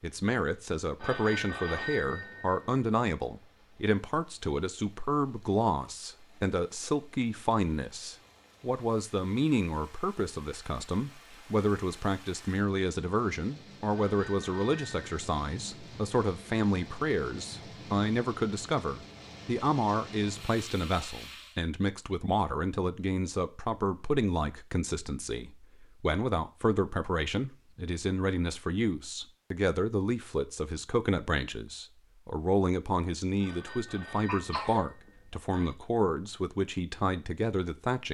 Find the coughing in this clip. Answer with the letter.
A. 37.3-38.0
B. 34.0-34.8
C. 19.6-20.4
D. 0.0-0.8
B.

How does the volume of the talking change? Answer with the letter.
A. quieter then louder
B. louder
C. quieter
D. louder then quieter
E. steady
E.